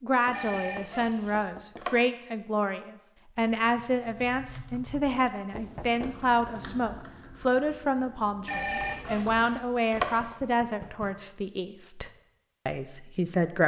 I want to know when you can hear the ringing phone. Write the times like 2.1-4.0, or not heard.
0.3-1.9, 8.4-10.3.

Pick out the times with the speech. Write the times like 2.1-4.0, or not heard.
0.0-13.6.